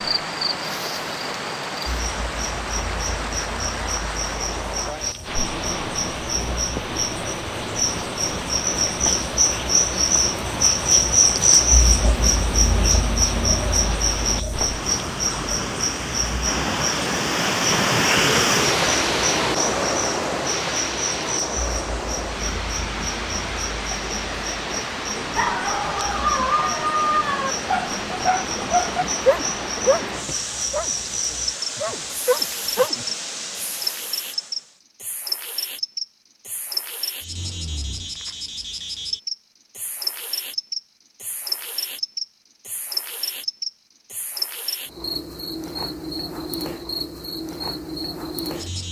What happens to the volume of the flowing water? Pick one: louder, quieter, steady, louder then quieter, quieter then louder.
louder then quieter.